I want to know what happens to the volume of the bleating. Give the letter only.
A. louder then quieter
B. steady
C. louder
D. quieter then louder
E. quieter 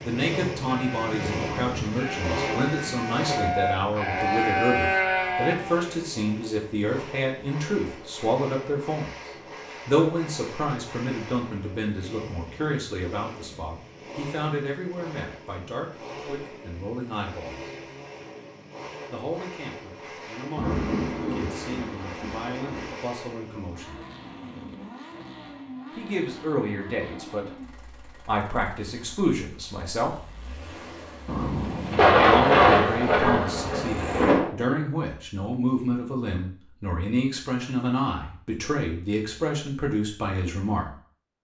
C.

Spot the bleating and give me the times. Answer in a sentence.
You can hear the bleating from 0.7 to 5.9 s.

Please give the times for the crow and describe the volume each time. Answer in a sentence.
You can't hear the crow here.